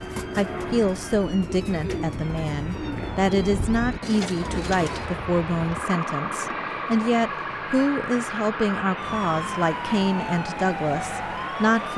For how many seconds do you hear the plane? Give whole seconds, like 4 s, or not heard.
12 s.